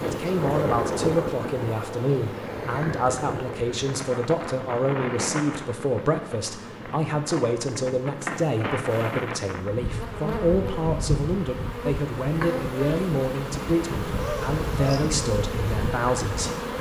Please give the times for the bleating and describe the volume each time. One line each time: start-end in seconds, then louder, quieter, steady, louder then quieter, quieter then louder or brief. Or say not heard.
not heard.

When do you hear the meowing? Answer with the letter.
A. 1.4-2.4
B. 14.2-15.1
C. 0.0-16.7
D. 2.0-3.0
B.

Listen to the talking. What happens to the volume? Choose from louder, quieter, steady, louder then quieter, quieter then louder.
steady.